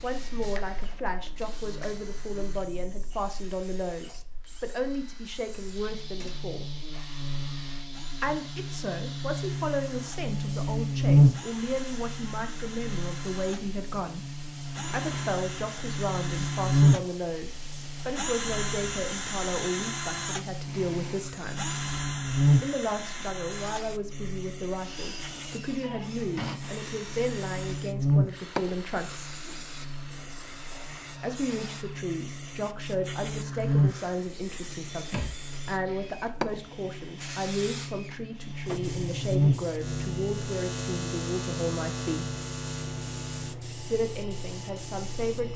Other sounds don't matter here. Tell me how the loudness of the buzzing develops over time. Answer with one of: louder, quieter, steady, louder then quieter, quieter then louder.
louder then quieter.